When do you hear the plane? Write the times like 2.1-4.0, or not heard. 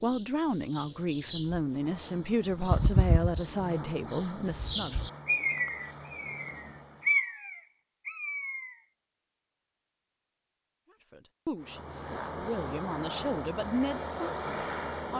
1.6-7.2, 11.6-15.1.